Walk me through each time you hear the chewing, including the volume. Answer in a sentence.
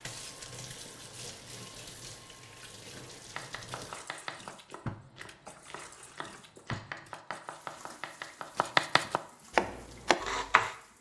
You can't hear the chewing here.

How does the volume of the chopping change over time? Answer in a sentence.
The loudness of the chopping goes down, then up.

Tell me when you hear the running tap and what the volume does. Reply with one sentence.
You can hear the running tap from 0.0 to 10.9 s, getting quieter.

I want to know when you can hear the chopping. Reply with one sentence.
You can hear the chopping from 3.2 to 10.8 s.